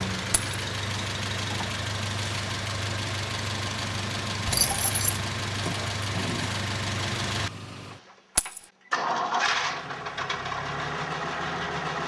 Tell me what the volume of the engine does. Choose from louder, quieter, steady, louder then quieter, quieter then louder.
steady.